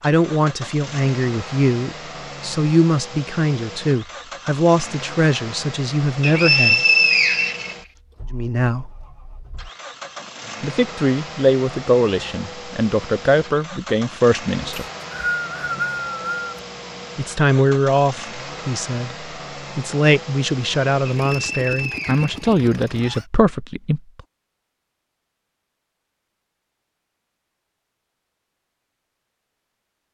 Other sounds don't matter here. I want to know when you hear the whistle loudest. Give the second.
7 s.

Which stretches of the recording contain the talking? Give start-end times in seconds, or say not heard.
0.0-6.8, 8.3-8.9, 10.6-14.8, 17.1-24.0.